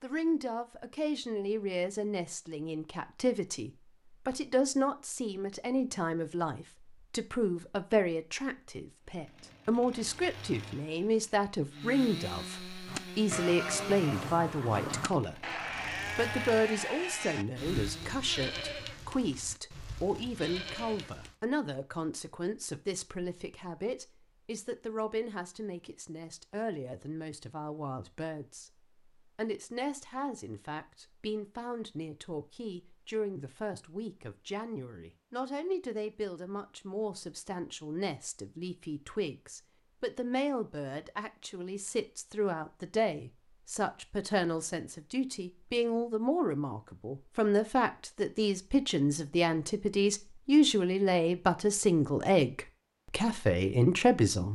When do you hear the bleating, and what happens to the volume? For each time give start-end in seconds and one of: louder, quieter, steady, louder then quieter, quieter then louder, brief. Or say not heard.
12.8-21.4 quieter.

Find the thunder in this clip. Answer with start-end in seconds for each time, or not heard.
not heard.